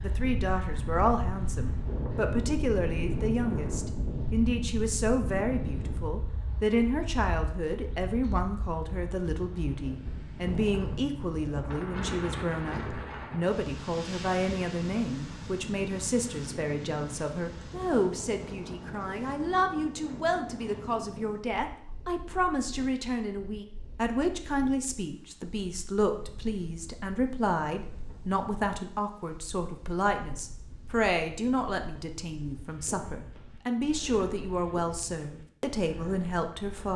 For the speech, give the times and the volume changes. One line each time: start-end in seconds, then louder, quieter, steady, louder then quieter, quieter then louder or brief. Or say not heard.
0.0-36.9 steady.